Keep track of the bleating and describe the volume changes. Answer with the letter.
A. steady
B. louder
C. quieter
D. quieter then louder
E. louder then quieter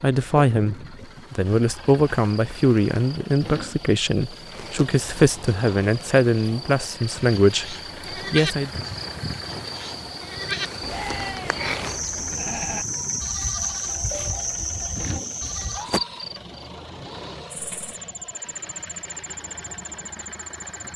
C.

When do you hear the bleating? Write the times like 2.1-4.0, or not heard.
7.2-15.8.